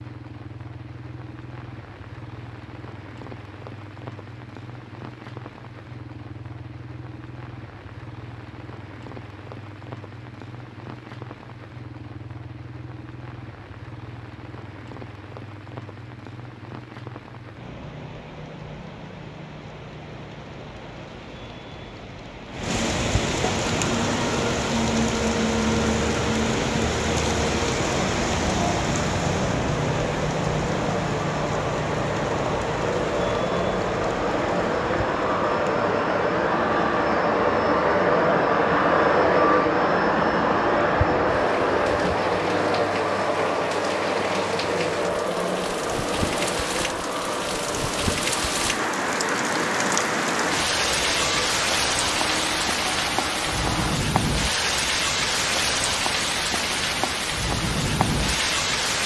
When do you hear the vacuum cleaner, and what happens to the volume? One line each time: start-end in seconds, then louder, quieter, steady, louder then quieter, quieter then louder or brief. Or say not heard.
23.8-54.0 louder then quieter.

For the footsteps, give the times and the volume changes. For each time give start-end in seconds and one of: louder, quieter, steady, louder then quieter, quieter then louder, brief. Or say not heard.
not heard.